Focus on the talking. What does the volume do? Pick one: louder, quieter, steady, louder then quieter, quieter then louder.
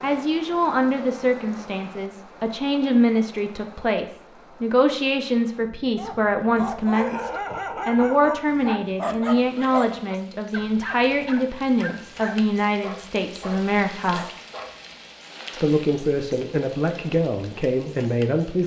steady.